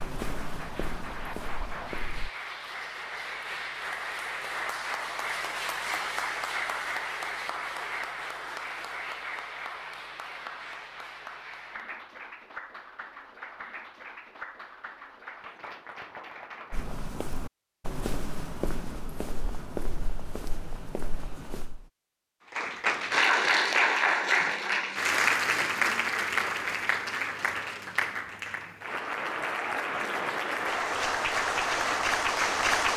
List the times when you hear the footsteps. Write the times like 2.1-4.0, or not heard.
0.0-2.3, 16.7-21.9.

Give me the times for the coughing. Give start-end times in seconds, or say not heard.
not heard.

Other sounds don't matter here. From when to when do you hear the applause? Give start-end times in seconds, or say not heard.
0.0-16.9, 22.5-32.9.